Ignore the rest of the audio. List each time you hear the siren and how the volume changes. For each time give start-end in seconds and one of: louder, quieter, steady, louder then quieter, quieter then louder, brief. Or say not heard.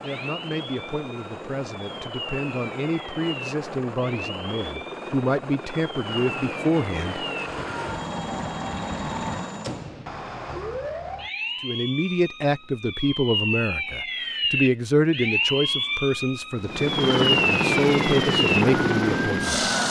0.0-19.8 louder.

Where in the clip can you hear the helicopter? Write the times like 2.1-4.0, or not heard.
0.0-9.9, 16.6-19.8.